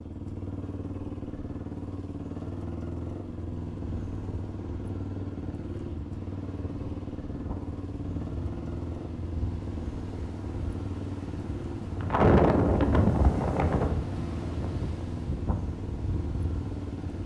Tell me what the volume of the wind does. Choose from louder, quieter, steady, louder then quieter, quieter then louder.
louder then quieter.